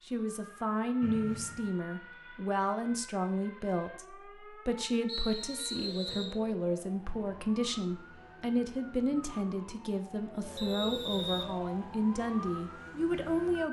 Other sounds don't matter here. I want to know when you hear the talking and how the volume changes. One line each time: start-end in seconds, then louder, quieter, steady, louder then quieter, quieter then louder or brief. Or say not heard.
0.1-13.6 steady.